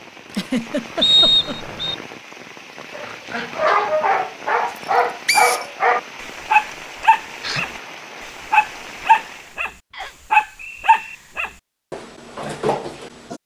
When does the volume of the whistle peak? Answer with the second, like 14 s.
1 s.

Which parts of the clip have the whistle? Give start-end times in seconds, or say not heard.
1.0-1.9, 5.2-5.7, 9.9-11.2.